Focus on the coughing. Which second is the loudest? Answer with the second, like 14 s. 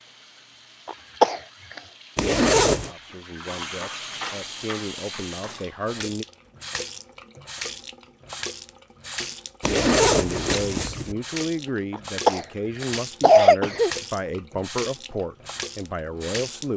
13 s.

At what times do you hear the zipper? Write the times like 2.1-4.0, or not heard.
2.1-2.9, 9.6-11.2.